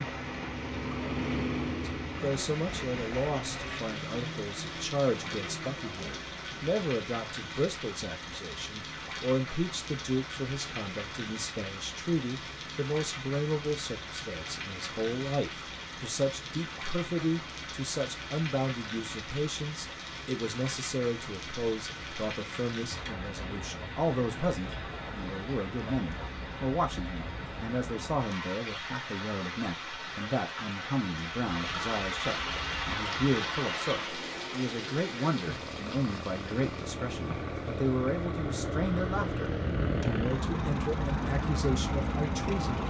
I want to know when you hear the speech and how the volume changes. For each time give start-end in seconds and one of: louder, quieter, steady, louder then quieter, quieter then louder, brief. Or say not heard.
1.9-42.8 steady.